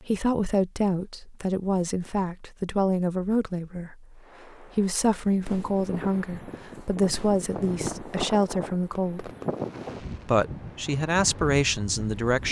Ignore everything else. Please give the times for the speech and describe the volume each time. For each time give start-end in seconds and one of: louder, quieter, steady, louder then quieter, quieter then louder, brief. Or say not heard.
0.0-9.3 steady
10.2-12.4 brief.